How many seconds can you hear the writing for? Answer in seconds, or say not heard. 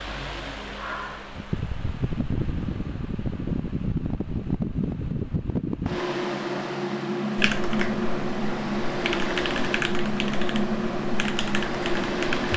not heard.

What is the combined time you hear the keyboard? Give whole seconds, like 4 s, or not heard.
5 s.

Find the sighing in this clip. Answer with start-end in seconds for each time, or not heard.
0.8-1.3.